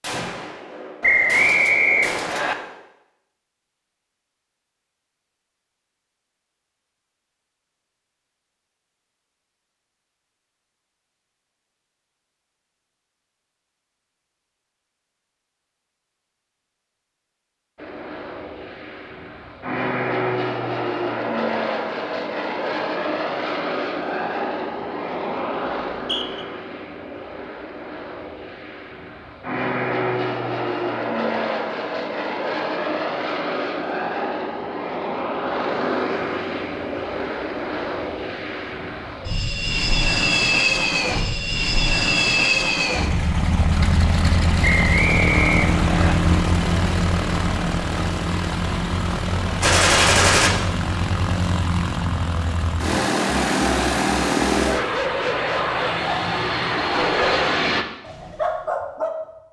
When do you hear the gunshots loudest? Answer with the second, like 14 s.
50 s.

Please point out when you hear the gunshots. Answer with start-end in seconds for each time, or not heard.
0.0-2.8, 49.6-50.5.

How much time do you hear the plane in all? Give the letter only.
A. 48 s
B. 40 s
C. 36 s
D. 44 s
B.